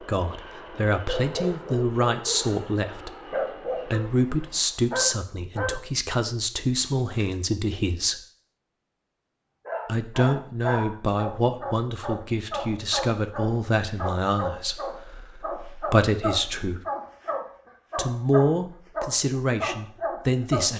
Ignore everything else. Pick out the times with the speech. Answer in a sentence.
You can hear the speech from 0.0 to 3.1 s, from 3.9 to 8.2 s, from 9.8 to 16.9 s and from 17.9 to 20.7 s.